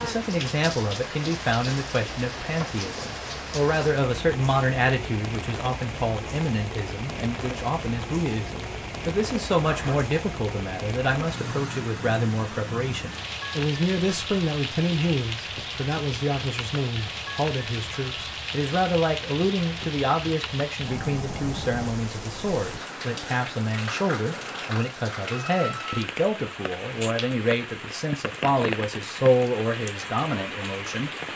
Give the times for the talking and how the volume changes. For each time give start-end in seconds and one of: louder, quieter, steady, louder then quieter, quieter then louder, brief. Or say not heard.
0.0-31.1 steady.